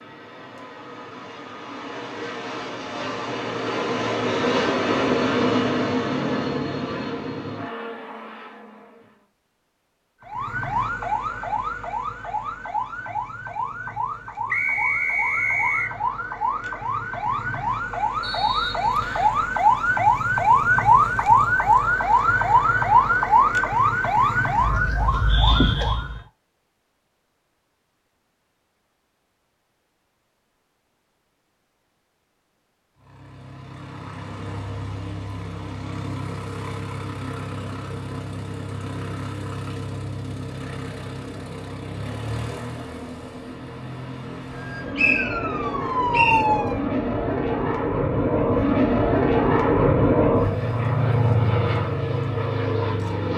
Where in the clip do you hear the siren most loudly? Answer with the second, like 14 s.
21 s.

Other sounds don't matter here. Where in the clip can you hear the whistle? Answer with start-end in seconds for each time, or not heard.
14.5-15.9, 18.2-19.4, 45.0-46.5.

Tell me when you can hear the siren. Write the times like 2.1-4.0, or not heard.
10.2-26.2, 44.5-46.8.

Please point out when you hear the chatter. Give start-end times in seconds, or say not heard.
not heard.